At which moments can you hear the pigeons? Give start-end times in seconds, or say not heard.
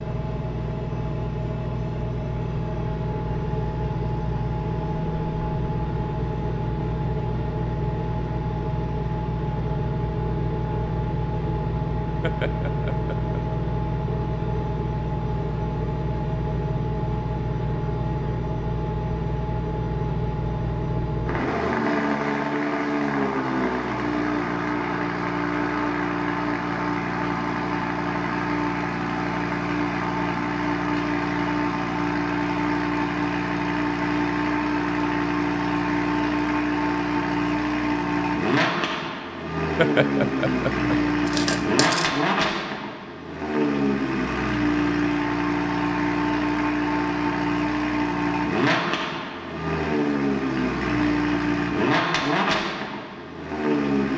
not heard.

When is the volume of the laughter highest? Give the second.
40 s.